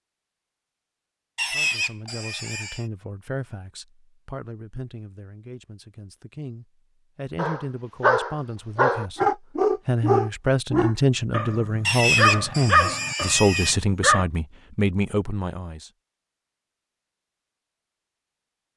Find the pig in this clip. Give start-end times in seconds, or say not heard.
1.4-2.9, 11.8-13.8.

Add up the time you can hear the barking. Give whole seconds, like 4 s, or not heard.
7 s.